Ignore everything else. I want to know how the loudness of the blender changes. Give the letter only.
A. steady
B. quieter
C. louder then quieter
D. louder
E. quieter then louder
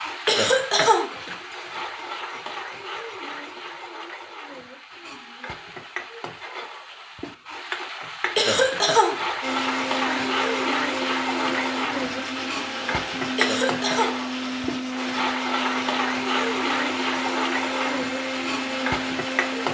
A.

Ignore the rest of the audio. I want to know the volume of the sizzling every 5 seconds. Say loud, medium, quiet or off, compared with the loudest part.
medium, medium, loud, loud.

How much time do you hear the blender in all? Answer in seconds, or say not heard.
10 s.